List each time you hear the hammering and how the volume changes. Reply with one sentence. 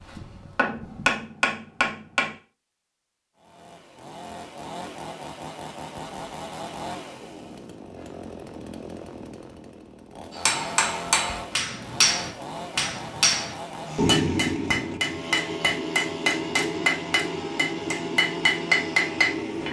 The hammering can be heard briefly from 0.0 to 2.4 s; and from 10.3 to 19.6 s, at a steady volume.